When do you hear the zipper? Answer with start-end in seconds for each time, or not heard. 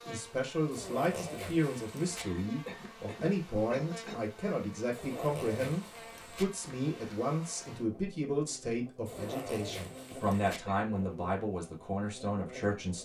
0.7-2.2, 4.9-6.5, 9.1-10.6.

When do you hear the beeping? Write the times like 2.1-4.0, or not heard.
not heard.